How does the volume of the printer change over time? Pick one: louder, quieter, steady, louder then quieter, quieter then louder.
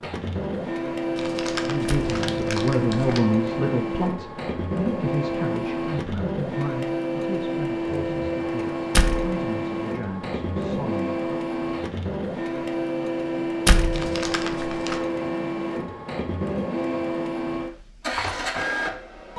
steady.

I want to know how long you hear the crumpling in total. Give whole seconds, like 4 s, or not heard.
3 s.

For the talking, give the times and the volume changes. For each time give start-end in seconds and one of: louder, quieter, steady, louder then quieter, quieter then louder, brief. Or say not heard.
1.6-11.2 quieter.